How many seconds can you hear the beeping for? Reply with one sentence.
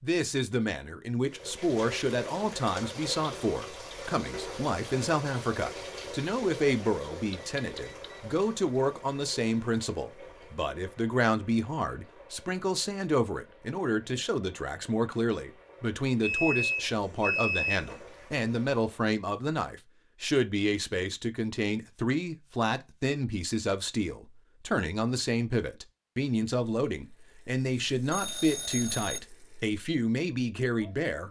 You can hear the beeping for 4 seconds altogether.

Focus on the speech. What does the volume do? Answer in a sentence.
The volume of the speech stays about the same.